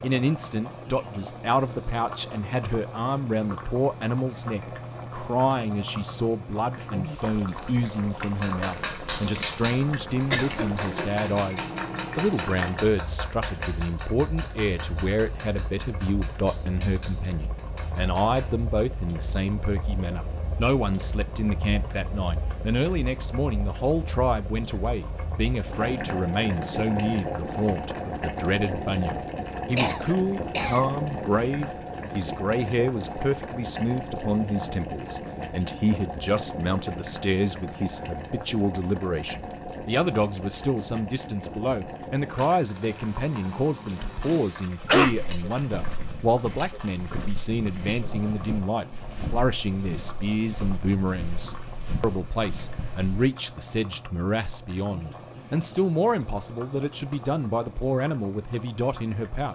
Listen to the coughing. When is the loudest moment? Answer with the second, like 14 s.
45 s.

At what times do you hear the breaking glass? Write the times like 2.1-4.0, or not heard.
not heard.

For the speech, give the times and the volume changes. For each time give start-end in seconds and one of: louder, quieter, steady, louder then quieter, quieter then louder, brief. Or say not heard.
0.0-59.4 steady.